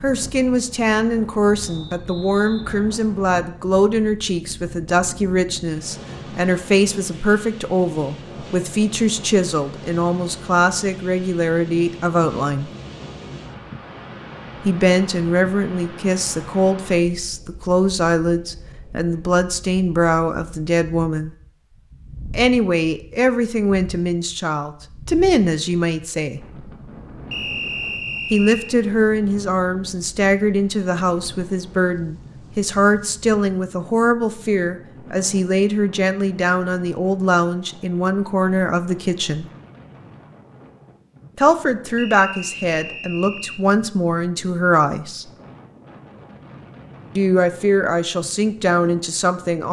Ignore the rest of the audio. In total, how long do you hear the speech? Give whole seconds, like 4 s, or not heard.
41 s.